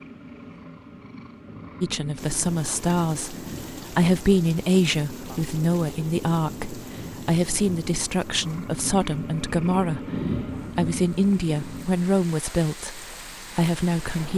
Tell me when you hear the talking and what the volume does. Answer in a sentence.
The talking can be heard from 1.8 to 14.3 s, at a steady volume.